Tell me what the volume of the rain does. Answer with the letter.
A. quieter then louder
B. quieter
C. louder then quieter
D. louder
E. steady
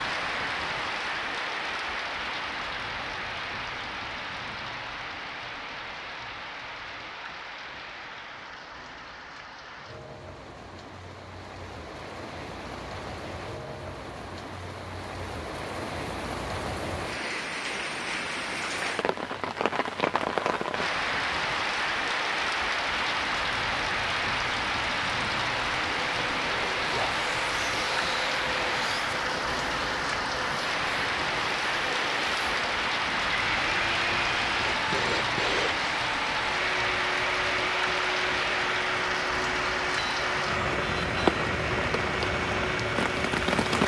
D.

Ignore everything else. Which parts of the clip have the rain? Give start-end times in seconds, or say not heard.
0.0-43.8.